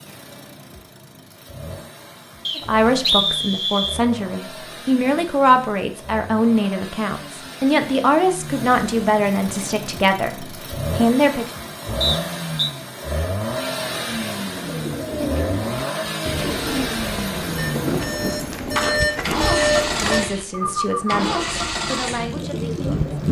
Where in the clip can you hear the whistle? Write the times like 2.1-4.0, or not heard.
2.5-4.0, 12.0-12.7.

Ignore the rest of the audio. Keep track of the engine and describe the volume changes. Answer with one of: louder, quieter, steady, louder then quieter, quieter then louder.
louder.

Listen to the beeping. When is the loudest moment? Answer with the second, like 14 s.
20 s.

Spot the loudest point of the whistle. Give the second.
3 s.